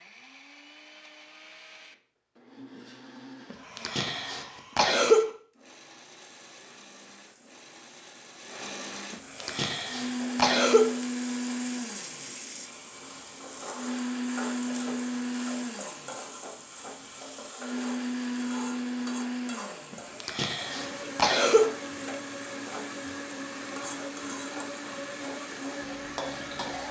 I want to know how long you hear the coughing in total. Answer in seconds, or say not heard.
5 s.